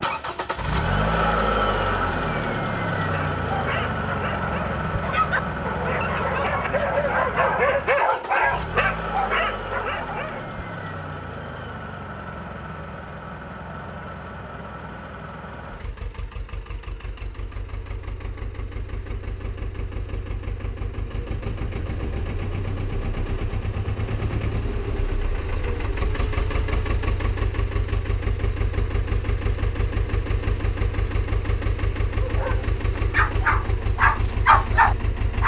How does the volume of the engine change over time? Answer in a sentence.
The loudness of the engine goes down, then up.